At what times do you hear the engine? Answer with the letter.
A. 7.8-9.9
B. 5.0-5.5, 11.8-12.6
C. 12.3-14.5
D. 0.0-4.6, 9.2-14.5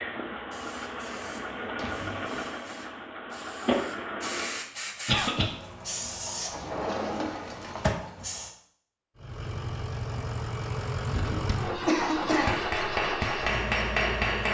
D.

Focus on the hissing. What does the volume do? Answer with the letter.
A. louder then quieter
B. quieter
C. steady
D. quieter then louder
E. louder
E.